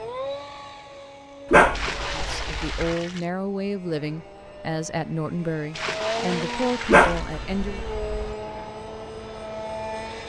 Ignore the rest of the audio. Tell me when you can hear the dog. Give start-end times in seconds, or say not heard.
1.5-3.0, 6.9-8.3.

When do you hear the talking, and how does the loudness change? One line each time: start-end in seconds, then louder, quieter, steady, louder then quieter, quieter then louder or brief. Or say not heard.
2.1-7.8 steady.